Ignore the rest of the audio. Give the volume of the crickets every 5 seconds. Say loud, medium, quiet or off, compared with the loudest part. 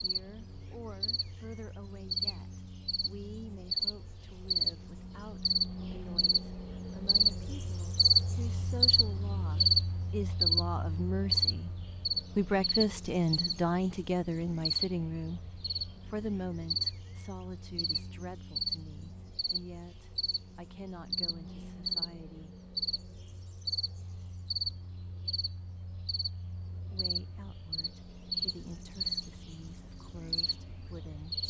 medium, loud, loud, medium, medium, medium, medium.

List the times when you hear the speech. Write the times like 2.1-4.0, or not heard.
0.0-11.7, 12.3-22.6, 26.9-31.4.